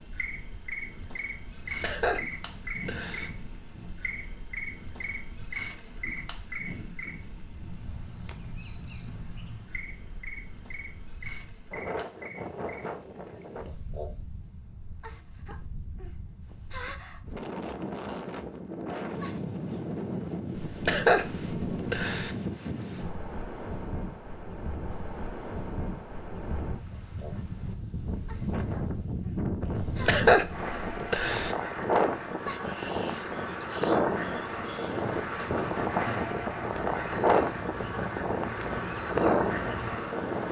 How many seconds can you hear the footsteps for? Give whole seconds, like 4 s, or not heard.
not heard.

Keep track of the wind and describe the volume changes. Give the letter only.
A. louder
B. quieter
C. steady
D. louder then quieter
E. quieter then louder
A.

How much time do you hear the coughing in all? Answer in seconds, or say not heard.
5 s.